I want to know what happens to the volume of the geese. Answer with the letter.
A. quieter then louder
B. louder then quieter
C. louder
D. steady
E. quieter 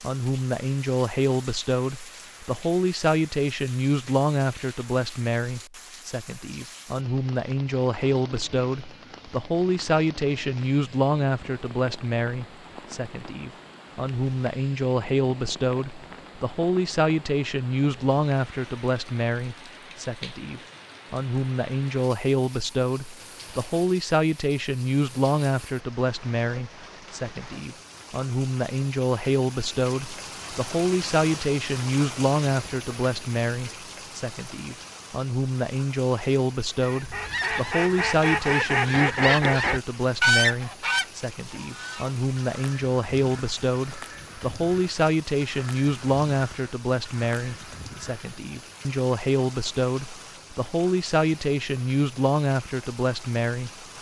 E.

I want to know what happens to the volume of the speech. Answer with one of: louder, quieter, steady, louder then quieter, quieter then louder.
steady.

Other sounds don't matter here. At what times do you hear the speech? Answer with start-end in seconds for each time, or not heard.
0.0-53.7.